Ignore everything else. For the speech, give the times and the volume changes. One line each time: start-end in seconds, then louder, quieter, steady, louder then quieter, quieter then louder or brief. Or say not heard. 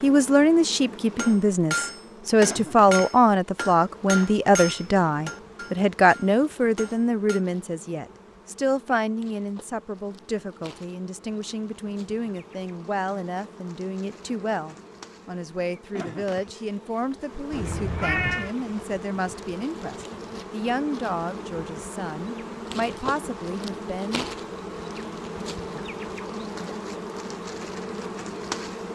0.0-24.2 quieter.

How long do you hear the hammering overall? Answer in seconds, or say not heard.
6 s.